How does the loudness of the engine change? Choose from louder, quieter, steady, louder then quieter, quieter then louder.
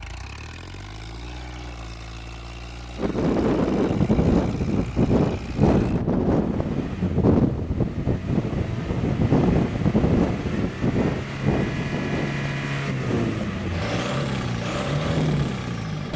louder.